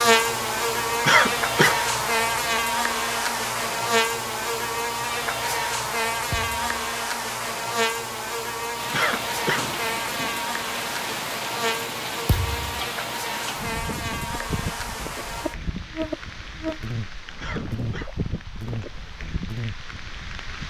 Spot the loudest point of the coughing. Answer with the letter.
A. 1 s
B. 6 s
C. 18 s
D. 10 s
A.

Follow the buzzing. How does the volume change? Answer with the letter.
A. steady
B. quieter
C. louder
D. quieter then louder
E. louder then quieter
B.